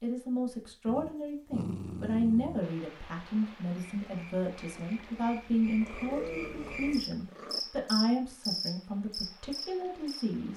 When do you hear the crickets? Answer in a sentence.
You can hear the crickets from 3.8 to 10.2 s.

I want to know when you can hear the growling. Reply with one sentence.
You can hear the growling from 0.8 to 2.6 s and from 5.8 to 7.6 s.